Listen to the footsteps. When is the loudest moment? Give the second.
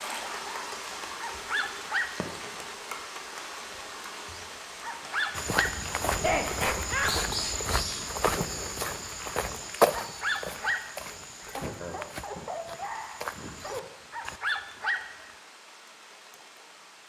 10 s.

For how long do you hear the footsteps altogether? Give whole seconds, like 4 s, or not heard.
9 s.